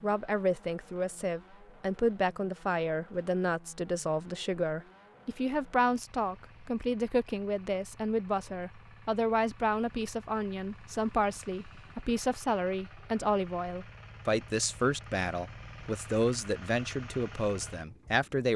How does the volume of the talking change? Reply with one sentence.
The volume of the talking stays about the same.